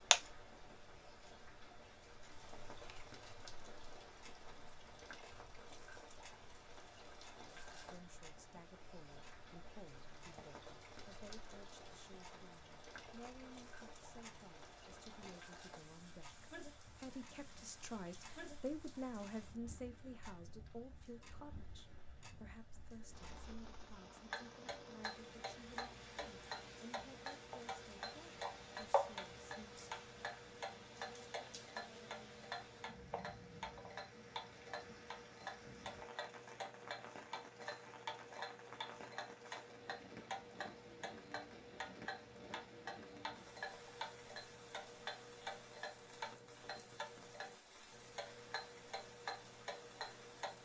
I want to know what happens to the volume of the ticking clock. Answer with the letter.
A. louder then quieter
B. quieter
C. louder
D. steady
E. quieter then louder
C.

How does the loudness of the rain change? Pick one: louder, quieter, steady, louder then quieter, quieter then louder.
steady.